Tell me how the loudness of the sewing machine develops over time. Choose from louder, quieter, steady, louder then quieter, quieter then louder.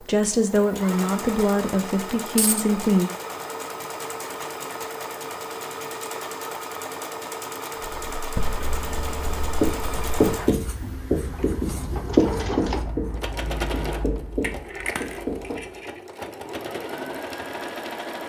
steady.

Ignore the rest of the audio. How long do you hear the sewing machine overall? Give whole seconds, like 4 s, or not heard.
18 s.